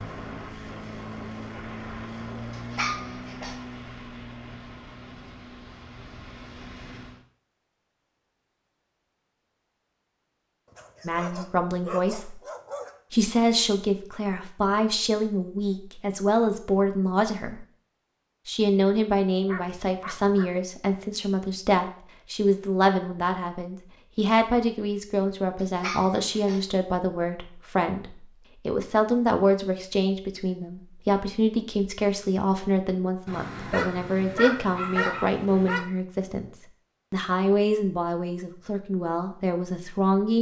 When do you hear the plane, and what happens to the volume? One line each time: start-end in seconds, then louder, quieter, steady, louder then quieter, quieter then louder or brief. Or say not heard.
0.0-7.2 quieter.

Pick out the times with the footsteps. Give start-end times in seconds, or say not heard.
not heard.